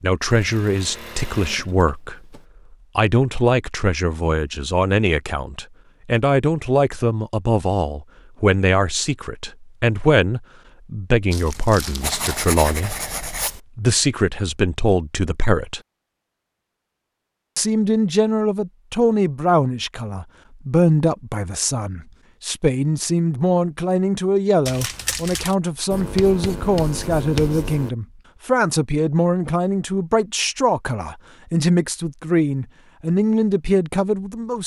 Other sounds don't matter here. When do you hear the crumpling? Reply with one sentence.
The crumpling can be heard from 11.3 to 12.5 s and from 24.6 to 25.6 s.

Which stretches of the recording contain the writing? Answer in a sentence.
The writing can be heard from 12.0 to 13.6 s and from 25.9 to 27.9 s.